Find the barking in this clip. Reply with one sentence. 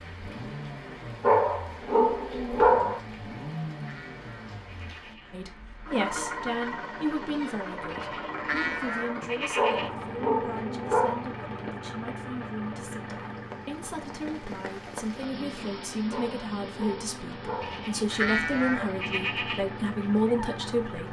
You can hear the barking from 1.2 to 3.0 s, from 9.6 to 11.2 s and from 16.1 to 17.9 s.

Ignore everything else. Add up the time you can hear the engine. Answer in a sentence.
The engine can be heard for 21 seconds in total.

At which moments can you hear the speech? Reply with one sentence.
You can hear the speech from 5.3 to 21.0 s.